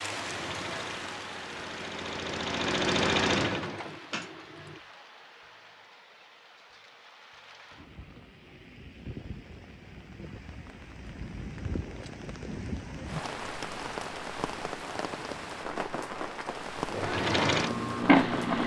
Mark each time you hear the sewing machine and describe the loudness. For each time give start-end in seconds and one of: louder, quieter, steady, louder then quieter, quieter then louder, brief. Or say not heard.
0.0-4.8 louder then quieter
16.9-18.6 brief.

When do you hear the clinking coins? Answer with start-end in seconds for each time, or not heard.
not heard.